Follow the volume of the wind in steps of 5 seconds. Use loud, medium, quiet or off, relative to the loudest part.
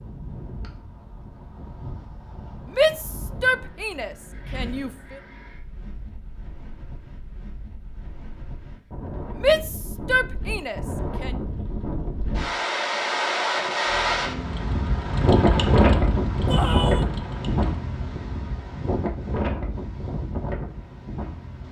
quiet, quiet, loud, loud, medium.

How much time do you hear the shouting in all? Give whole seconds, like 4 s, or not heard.
5 s.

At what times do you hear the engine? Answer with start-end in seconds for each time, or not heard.
13.8-17.8.